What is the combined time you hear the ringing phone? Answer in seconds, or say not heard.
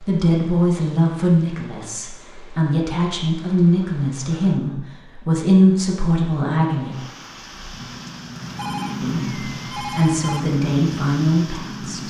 2 s.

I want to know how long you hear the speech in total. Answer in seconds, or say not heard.
10 s.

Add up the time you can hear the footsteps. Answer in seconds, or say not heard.
not heard.